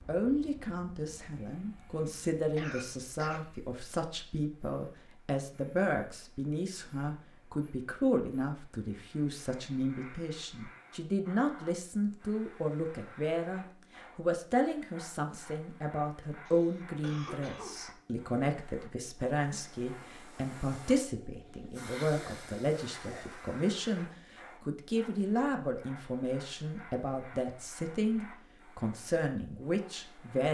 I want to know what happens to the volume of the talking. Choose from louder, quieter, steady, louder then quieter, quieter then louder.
steady.